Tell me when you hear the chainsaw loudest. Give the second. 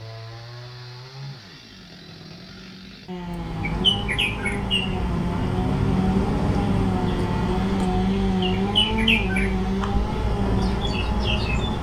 8 s.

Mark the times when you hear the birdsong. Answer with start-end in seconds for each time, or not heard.
3.2-11.7.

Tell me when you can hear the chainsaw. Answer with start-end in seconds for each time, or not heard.
0.0-11.6.